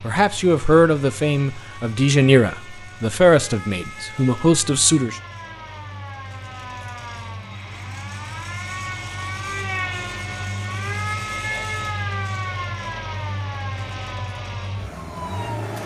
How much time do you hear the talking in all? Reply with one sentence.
The talking can be heard for 5 seconds in total.